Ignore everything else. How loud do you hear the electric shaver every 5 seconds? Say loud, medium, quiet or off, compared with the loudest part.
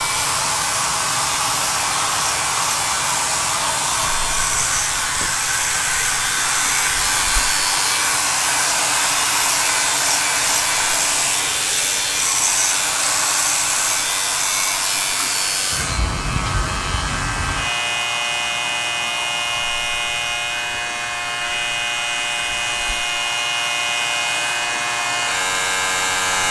medium, loud, loud, loud, loud, loud.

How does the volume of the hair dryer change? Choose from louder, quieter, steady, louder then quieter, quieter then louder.
quieter.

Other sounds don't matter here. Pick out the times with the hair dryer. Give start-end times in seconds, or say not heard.
0.0-26.4.